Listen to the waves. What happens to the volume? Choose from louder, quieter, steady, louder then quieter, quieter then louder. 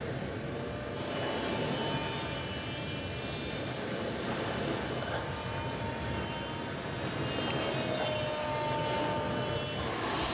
steady.